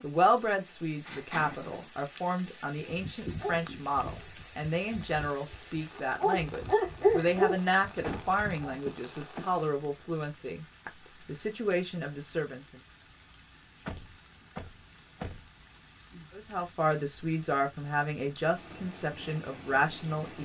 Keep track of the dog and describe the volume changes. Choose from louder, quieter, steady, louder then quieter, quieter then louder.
quieter then louder.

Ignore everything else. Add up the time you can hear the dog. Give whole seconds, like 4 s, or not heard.
6 s.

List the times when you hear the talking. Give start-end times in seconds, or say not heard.
0.0-12.8, 16.3-20.4.